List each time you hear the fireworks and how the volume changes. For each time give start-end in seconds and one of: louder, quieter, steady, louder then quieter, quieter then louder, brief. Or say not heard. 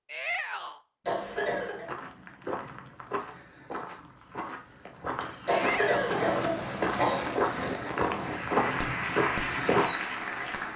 6.0-10.7 steady.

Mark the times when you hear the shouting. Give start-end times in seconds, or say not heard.
0.1-0.8, 5.5-6.2.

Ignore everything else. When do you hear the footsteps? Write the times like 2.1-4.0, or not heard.
1.2-9.9.